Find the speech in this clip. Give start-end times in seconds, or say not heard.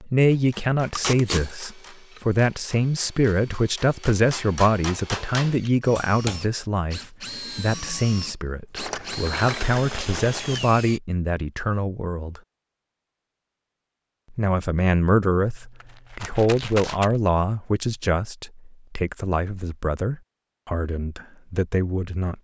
0.0-12.4, 14.3-22.4.